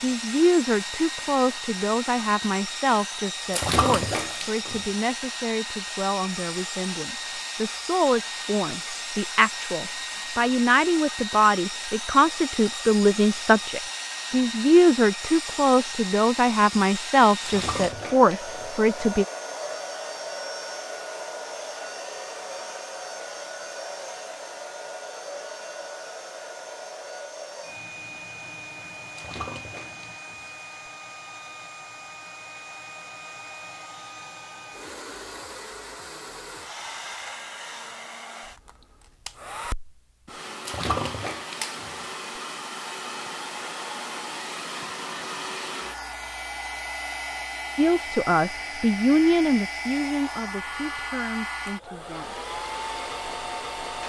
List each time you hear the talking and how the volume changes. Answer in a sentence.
The talking can be heard from 0.0 to 19.2 s, getting quieter then louder; and from 47.8 to 52.4 s, getting quieter.